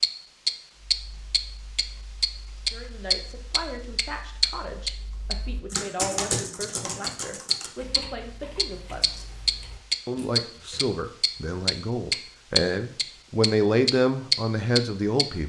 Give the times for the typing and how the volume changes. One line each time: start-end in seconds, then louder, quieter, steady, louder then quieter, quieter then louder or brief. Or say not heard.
0.8-10.8 louder then quieter.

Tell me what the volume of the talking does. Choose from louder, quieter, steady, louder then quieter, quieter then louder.
louder.